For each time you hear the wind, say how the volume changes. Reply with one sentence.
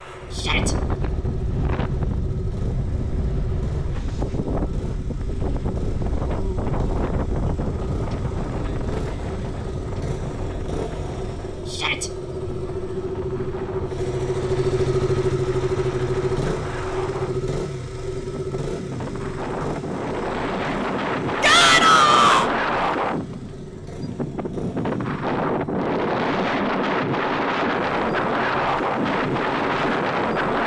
You can hear the wind from 0.0 to 30.6 s, getting quieter then louder.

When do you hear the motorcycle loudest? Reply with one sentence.
The loudest moment of the motorcycle is at 15 seconds.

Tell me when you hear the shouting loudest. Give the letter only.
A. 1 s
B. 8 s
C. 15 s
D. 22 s
D.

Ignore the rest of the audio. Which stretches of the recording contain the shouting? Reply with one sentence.
The shouting can be heard from 0.3 to 0.8 s, from 11.7 to 12.1 s and from 21.4 to 22.5 s.